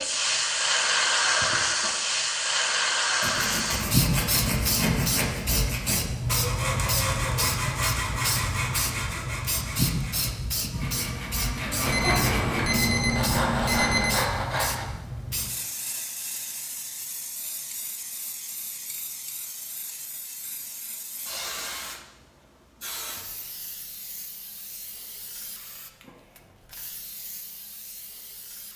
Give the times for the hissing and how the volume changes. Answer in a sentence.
The hissing can be heard from 0.0 to 28.7 s, getting quieter.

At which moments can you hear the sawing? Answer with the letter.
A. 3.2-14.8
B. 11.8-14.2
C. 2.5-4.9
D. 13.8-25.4
A.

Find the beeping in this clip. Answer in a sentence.
You can hear the beeping from 11.8 to 14.2 s.